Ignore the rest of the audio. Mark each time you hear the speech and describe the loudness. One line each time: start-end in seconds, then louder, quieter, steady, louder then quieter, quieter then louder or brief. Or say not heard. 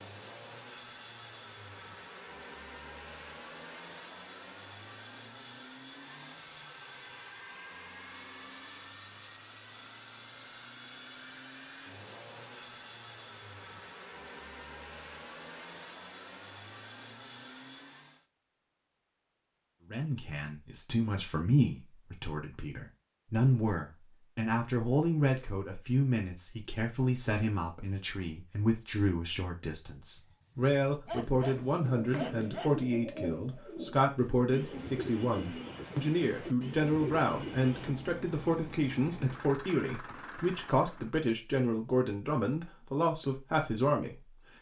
19.9-44.3 steady.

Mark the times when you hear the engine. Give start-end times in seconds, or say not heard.
0.0-18.2, 36.8-41.1.